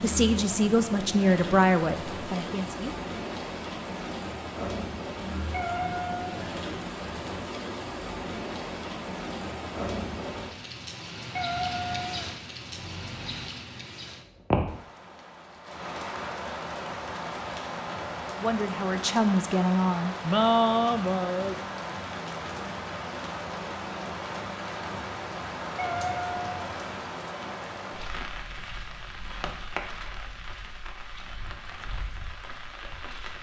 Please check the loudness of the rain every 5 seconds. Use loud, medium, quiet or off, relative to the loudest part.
loud, loud, loud, loud, loud, loud, medium.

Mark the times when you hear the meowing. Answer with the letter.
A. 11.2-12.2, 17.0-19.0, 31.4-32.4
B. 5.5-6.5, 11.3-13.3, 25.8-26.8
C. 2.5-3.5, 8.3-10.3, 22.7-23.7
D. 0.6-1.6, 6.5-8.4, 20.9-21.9
B.